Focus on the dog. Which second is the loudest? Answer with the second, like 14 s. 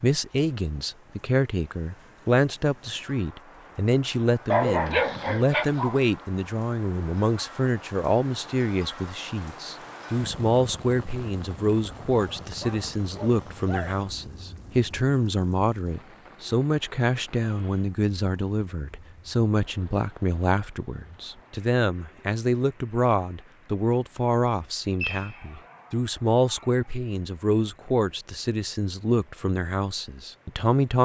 5 s.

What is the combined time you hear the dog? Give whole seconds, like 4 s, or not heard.
5 s.